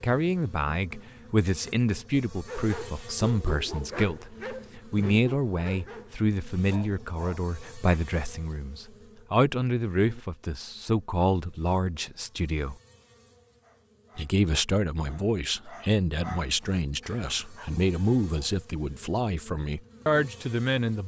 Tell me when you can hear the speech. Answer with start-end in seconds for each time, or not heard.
0.0-12.8, 14.2-21.0.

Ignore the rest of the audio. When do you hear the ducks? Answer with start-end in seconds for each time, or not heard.
not heard.